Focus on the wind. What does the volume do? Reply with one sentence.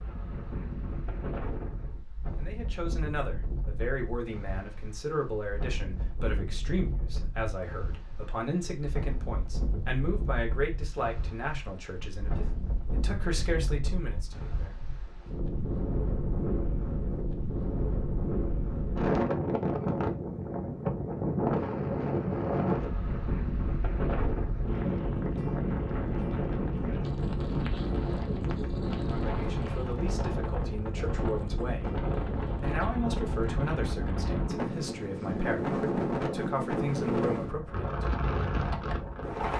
The loudness of the wind goes up.